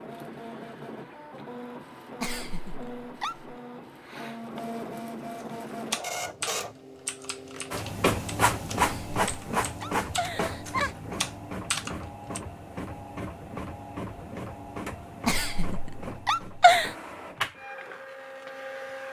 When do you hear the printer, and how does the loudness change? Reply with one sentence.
The printer can be heard from 0.0 to 19.0 s, getting louder then quieter.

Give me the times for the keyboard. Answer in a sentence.
The keyboard can be heard from 5.9 to 12.4 s.